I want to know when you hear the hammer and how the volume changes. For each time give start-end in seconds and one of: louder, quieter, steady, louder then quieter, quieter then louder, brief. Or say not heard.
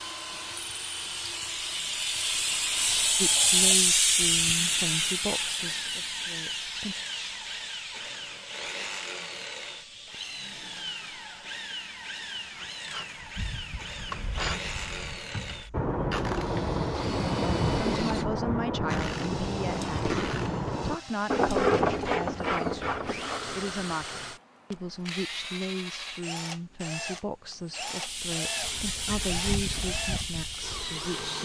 not heard.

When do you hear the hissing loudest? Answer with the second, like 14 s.
4 s.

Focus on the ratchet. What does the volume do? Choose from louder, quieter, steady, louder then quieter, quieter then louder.
louder.